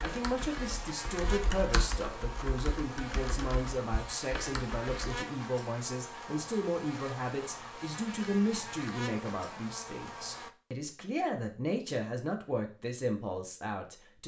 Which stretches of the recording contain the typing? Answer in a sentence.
The typing can be heard from 0.0 to 5.2 s.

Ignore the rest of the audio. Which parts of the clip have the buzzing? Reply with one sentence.
You can hear the buzzing from 0.0 to 10.5 s.